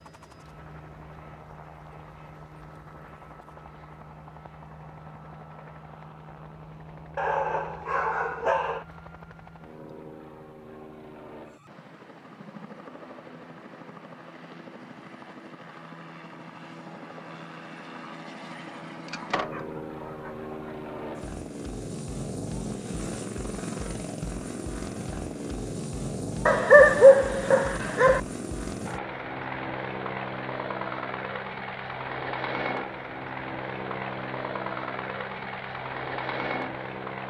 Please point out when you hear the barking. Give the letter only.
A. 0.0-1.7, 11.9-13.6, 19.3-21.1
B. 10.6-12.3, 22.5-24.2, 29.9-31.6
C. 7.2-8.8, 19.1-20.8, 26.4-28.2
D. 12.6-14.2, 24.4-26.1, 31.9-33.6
C.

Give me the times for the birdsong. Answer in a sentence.
You can't hear the birdsong here.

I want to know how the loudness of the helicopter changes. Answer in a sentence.
The loudness of the helicopter goes up.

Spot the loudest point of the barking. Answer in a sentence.
The loudest moment of the barking is at 27 seconds.